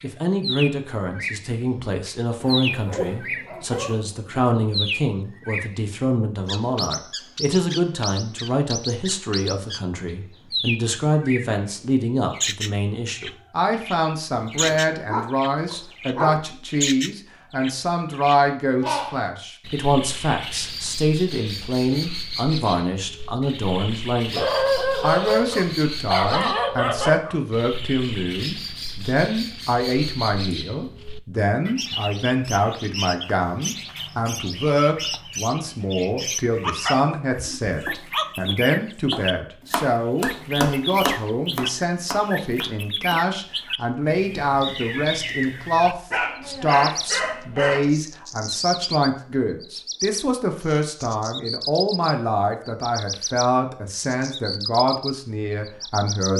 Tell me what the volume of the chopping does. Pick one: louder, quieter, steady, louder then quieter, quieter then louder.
louder then quieter.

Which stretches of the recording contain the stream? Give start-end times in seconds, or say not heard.
not heard.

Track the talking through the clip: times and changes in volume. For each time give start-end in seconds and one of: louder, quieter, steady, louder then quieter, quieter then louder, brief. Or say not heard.
0.0-56.3 steady.